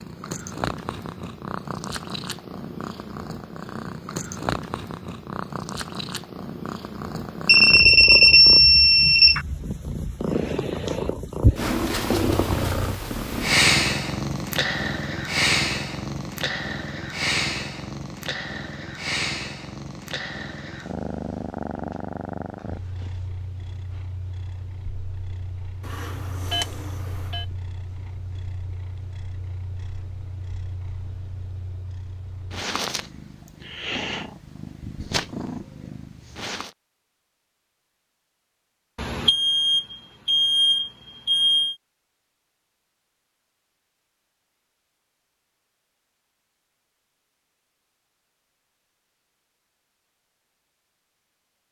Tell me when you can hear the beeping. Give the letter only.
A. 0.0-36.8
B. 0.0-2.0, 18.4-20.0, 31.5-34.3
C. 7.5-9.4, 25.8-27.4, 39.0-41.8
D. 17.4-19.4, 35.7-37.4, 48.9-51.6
C.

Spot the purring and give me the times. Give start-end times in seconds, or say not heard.
0.0-36.8.